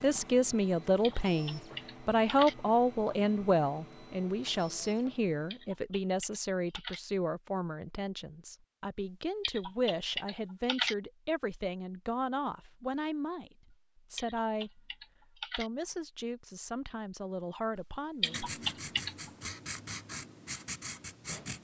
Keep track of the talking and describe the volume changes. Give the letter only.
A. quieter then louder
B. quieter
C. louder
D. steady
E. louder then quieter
B.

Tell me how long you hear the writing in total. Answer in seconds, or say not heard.
3 s.